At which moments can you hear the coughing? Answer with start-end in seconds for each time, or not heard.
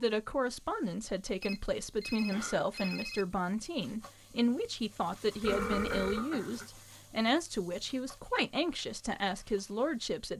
2.3-3.0, 5.5-6.7.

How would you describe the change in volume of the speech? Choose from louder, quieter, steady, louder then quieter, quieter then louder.
steady.